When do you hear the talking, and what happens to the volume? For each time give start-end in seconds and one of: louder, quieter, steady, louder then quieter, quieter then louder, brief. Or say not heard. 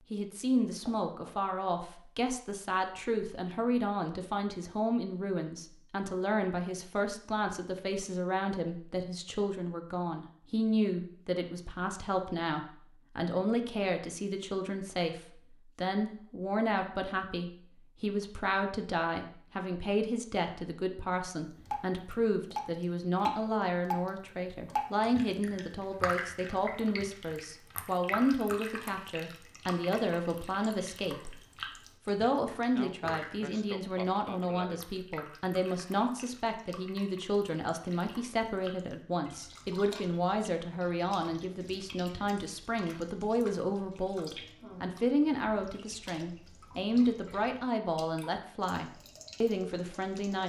0.1-31.4 steady
32.0-50.4 steady.